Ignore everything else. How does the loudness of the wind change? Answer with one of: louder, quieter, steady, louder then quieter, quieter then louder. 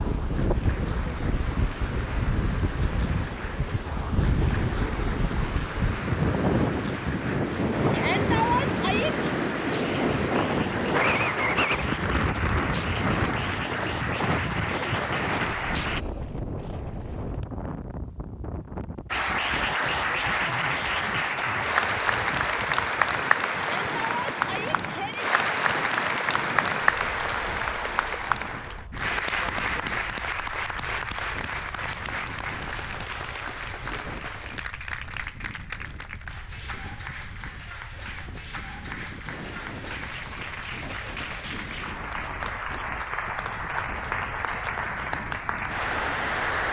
quieter.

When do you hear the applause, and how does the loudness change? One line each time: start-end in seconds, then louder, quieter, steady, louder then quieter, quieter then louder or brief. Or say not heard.
0.0-16.0 louder
19.1-46.6 quieter then louder.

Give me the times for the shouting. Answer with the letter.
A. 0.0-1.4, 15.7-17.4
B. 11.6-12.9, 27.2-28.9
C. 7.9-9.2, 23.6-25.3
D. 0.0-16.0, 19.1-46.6
C.